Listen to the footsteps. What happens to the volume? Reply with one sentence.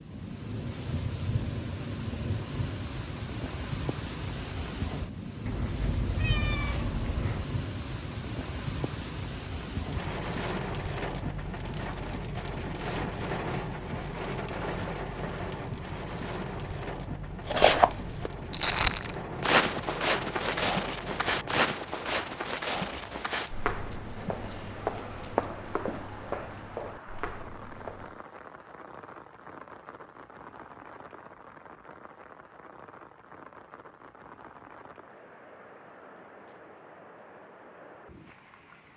The volume of the footsteps goes down.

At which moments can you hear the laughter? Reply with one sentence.
The laughter can't be heard in this clip.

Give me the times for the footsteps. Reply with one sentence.
You can hear the footsteps from 17.4 to 28.2 s.